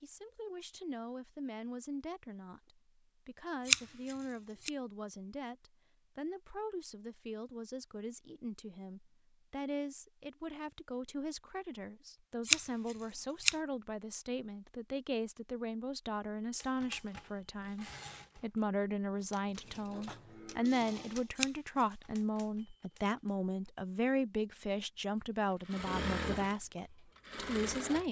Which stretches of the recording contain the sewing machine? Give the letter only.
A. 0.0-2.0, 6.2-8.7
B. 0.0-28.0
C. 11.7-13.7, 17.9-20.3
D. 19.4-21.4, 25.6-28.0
D.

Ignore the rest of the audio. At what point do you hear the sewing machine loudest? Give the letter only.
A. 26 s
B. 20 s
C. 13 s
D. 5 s
A.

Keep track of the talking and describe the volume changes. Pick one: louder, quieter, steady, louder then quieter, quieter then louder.
louder.